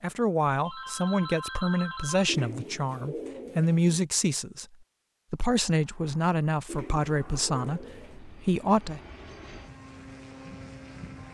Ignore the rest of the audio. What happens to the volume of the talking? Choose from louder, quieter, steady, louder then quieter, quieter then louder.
steady.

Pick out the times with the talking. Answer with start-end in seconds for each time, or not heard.
0.0-4.7, 5.3-9.0.